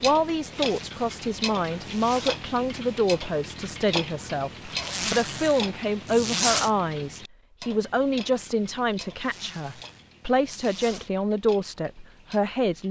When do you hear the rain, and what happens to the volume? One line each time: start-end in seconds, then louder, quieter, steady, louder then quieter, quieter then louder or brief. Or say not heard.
not heard.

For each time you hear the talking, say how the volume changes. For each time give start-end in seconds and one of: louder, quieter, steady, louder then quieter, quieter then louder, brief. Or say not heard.
0.0-12.8 steady.